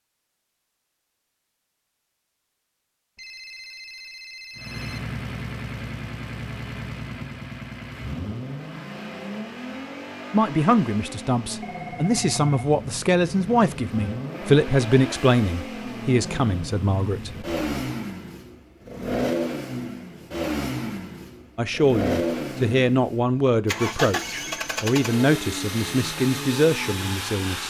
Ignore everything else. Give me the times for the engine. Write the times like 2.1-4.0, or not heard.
4.5-27.6.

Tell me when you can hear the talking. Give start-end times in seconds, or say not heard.
10.3-17.4, 21.6-27.6.